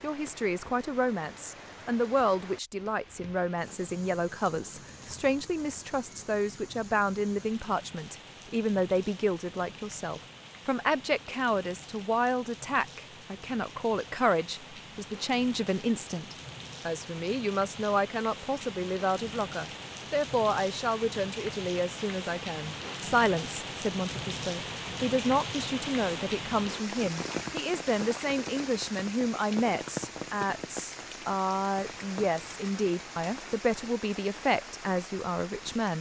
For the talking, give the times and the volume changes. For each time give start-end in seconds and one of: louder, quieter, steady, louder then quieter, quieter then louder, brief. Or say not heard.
0.0-35.9 steady.